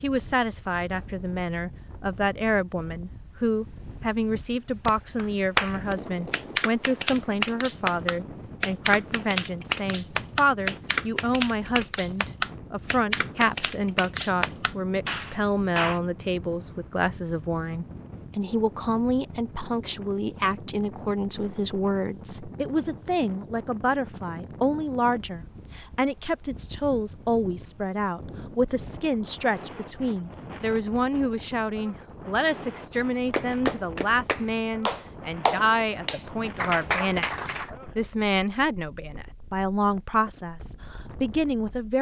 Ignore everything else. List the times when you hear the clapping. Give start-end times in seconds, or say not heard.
4.8-16.0, 33.3-37.7.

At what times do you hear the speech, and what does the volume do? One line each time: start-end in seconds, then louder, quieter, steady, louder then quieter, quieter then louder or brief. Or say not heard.
0.0-41.9 steady.